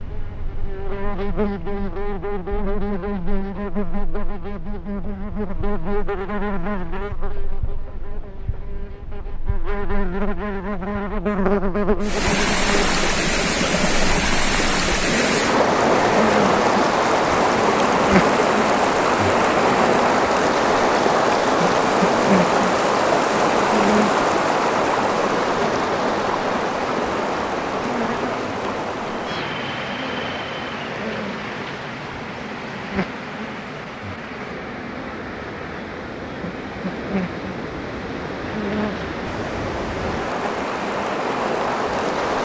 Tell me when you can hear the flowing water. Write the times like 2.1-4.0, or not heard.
12.0-42.4.